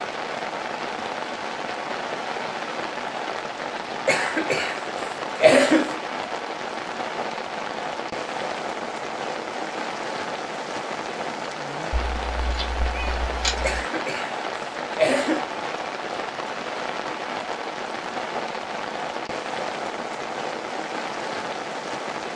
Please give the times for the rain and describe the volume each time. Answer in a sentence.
The rain can be heard from 0.0 to 22.3 s, at a steady volume.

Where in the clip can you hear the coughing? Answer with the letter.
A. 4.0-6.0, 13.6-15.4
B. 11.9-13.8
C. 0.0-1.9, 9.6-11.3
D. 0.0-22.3
A.